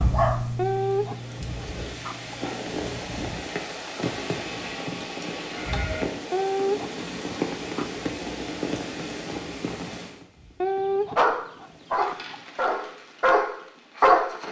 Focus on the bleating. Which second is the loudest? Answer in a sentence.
The loudest moment of the bleating is at 6 seconds.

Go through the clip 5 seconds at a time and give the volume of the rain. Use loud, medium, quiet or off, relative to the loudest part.
loud, loud, quiet.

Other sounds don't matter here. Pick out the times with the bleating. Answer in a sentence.
The bleating can be heard from 4.0 to 6.0 s.